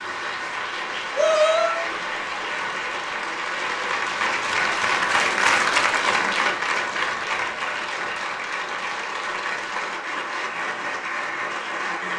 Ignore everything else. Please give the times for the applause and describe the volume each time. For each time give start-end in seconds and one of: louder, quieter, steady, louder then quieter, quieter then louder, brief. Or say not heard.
0.0-12.1 louder then quieter.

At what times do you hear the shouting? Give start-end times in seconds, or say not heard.
1.1-1.8.